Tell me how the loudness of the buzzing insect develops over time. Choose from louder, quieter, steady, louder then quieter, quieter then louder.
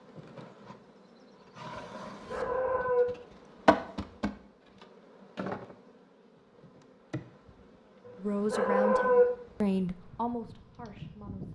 louder then quieter.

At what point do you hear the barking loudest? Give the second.
9 s.